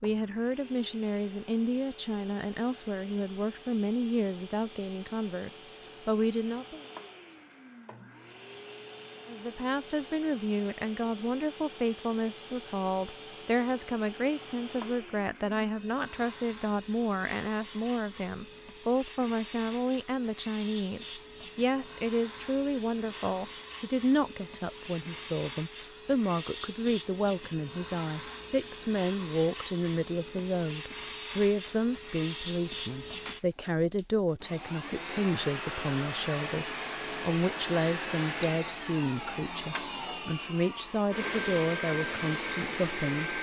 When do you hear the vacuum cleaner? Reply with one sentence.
You can hear the vacuum cleaner from 0.0 to 43.3 s.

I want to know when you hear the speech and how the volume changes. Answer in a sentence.
The speech can be heard from 0.0 to 6.8 s, at a steady volume; and from 9.2 to 43.3 s, at a steady volume.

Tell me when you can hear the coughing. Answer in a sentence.
You can't hear the coughing here.